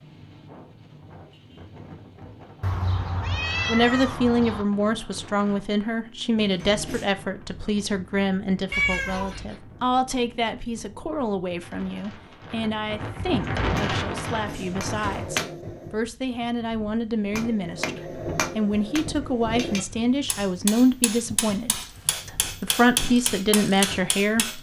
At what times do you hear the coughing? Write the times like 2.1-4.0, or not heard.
not heard.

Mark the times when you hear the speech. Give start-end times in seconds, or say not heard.
3.6-24.5.